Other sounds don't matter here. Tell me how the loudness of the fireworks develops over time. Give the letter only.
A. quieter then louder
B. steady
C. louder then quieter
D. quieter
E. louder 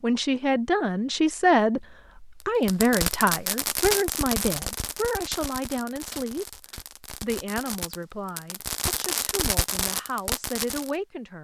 A.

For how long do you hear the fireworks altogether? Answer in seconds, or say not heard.
8 s.